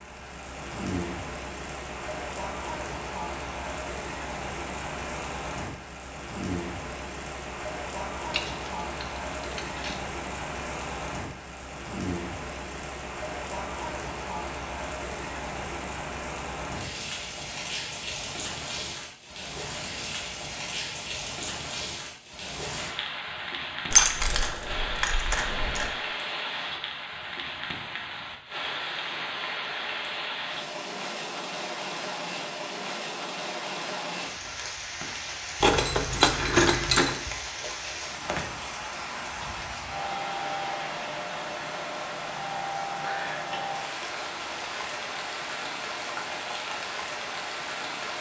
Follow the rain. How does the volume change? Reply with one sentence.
The loudness of the rain stays about the same.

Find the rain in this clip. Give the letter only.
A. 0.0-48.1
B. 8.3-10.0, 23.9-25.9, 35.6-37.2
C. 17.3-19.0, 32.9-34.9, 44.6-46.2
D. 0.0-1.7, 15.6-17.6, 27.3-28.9
A.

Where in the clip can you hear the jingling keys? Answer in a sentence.
You can hear the jingling keys from 8.3 to 10.0 s, from 23.9 to 25.9 s and from 35.6 to 37.2 s.